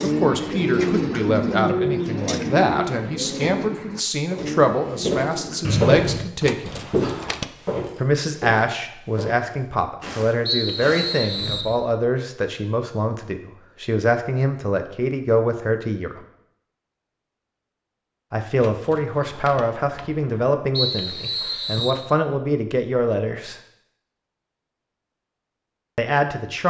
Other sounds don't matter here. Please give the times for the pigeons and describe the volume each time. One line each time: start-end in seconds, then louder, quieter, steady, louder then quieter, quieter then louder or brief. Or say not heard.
0.0-5.8 quieter.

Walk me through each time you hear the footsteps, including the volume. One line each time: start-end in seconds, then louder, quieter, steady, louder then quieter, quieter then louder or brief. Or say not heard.
4.3-11.7 quieter.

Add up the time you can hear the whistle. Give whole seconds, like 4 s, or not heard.
3 s.